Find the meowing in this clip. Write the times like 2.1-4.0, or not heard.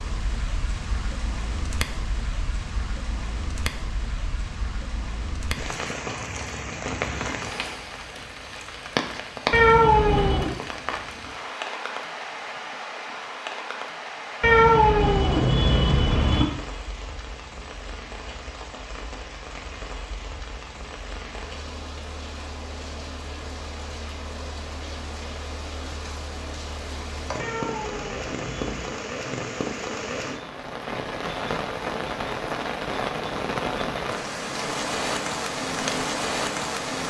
9.5-10.6, 14.4-16.4, 27.4-29.0.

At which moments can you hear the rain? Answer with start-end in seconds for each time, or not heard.
0.0-37.0.